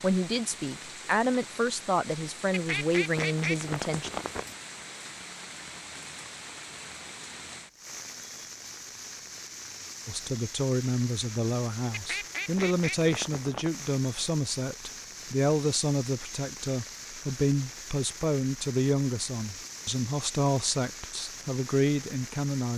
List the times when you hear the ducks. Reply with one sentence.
The ducks can be heard from 2.5 to 4.5 s and from 11.9 to 13.7 s.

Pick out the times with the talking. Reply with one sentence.
The talking can be heard from 0.0 to 4.1 s and from 10.1 to 22.7 s.